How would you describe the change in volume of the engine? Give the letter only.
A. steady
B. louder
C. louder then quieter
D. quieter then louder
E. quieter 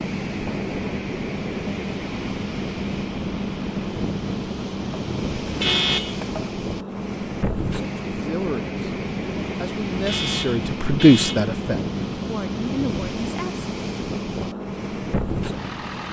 A.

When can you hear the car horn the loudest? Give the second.
6 s.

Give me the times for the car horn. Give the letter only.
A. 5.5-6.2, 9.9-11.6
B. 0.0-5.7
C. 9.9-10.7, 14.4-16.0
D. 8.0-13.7
A.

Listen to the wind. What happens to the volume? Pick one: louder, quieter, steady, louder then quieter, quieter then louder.
steady.